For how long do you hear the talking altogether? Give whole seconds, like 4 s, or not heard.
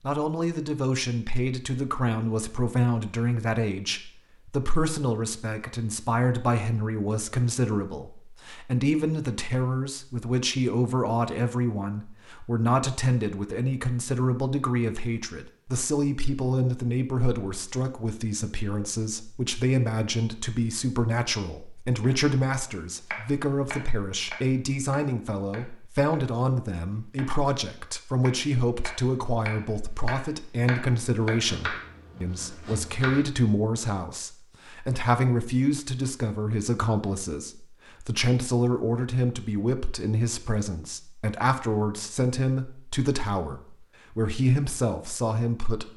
46 s.